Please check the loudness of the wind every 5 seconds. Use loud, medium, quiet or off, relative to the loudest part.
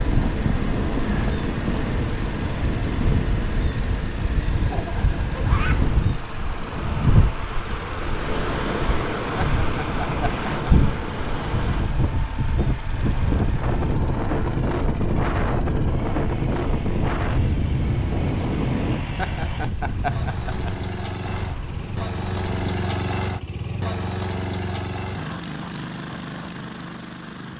loud, loud, loud, loud, medium, off.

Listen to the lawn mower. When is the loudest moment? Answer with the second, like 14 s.
23 s.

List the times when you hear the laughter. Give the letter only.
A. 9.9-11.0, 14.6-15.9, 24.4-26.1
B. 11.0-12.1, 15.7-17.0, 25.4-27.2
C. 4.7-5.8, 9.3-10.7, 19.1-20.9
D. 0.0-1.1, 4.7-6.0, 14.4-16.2
C.